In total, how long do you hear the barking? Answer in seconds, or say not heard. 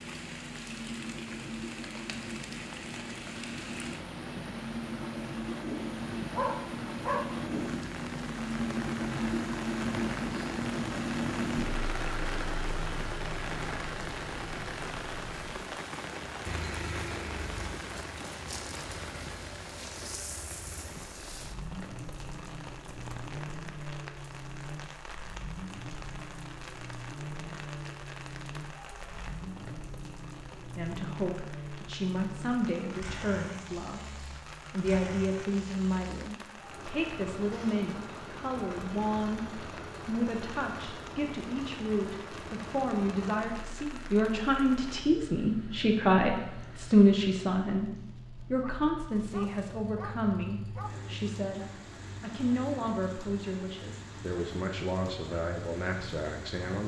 3 s.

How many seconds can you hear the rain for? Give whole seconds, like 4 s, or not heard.
57 s.